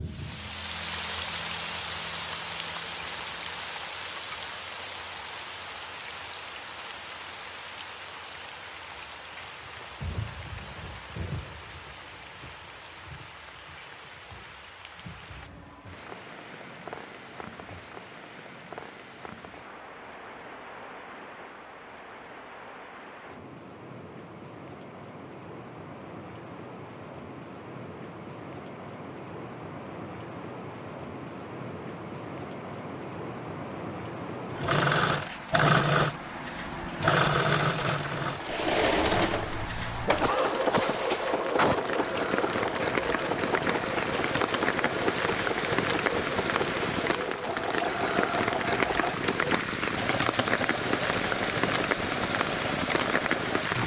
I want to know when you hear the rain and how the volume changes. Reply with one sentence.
The rain can be heard from 0.0 to 53.8 s, getting quieter then louder.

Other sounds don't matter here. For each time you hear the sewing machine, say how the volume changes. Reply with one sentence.
You can hear the sewing machine from 34.5 to 53.8 s, getting quieter.